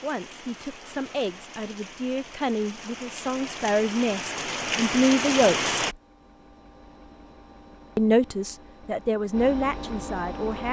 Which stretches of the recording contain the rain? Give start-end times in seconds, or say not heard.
0.0-6.0.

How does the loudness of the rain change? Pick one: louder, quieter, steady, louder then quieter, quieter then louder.
louder.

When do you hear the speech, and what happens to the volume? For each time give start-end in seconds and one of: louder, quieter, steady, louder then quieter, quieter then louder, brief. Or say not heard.
0.0-5.7 louder
8.0-10.6 brief.